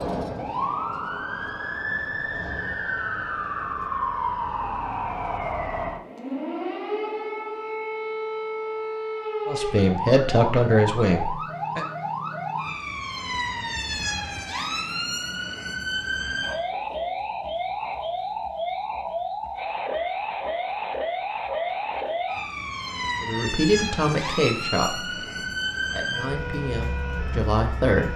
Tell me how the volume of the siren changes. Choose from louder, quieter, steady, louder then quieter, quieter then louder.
steady.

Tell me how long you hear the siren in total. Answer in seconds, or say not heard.
28 s.